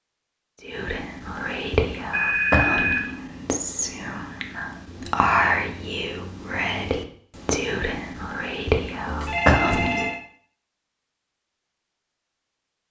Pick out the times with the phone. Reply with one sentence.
You can hear the phone from 2.1 to 3.1 s and from 9.1 to 10.2 s.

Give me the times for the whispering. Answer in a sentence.
The whispering can be heard from 0.7 to 10.1 s.